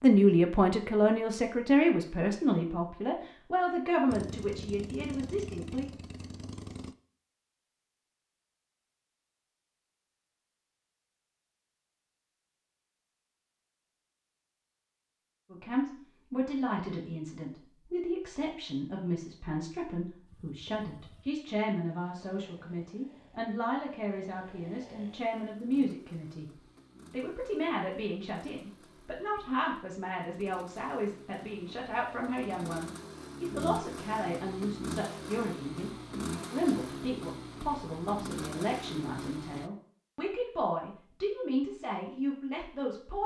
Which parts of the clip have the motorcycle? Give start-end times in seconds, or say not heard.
4.1-7.0, 20.2-39.7.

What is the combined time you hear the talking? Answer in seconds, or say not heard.
33 s.